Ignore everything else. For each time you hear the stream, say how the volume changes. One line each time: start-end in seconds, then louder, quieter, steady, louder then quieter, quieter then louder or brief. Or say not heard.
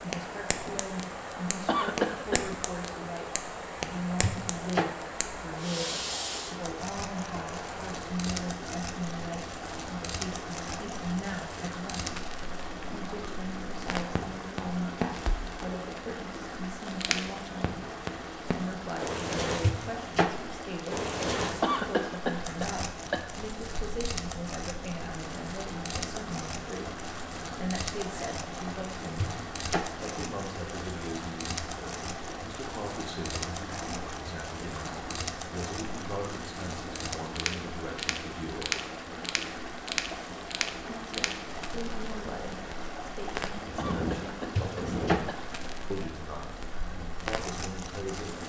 0.0-48.4 steady.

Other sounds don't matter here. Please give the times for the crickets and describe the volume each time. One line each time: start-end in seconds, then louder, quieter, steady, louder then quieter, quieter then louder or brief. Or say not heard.
not heard.